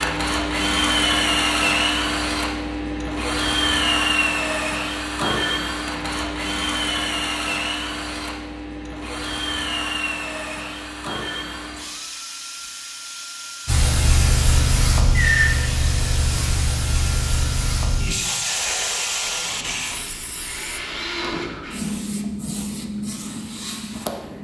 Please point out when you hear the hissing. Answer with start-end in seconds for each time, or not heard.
13.7-24.3.